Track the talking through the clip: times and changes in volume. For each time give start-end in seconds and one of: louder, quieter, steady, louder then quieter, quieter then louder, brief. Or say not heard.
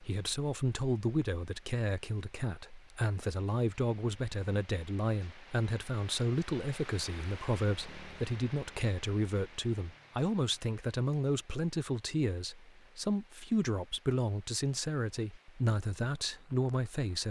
0.0-17.2 steady.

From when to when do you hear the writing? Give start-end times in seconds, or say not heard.
not heard.